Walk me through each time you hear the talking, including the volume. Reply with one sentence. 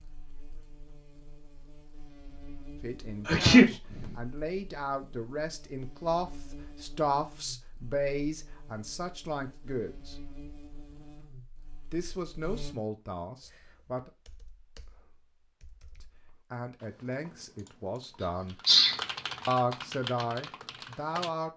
The talking can be heard from 2.8 to 10.2 s, getting louder then quieter; briefly from 11.9 to 14.1 s; briefly from 16.0 to 18.6 s; and briefly from 19.4 to 21.5 s.